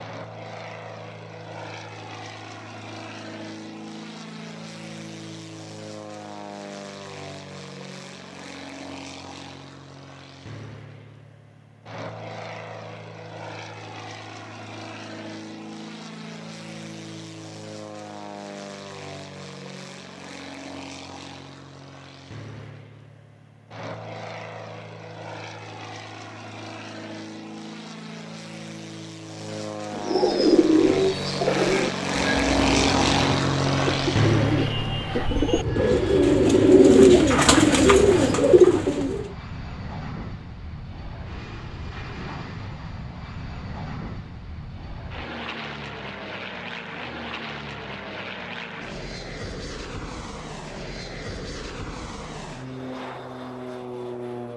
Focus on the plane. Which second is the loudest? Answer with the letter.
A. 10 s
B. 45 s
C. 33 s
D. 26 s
C.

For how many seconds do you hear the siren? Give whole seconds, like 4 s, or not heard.
not heard.